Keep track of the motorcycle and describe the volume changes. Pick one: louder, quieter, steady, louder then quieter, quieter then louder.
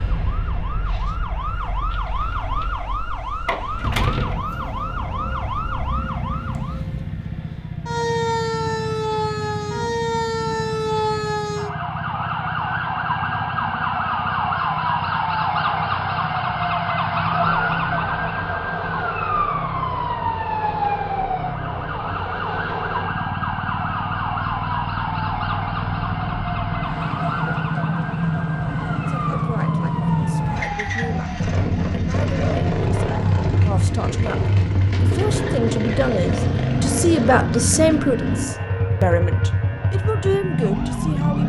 louder.